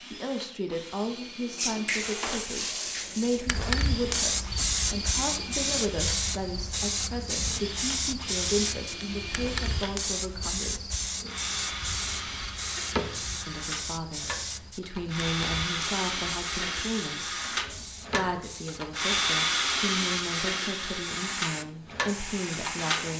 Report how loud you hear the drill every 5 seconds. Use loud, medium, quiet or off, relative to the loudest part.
quiet, medium, medium, loud, loud.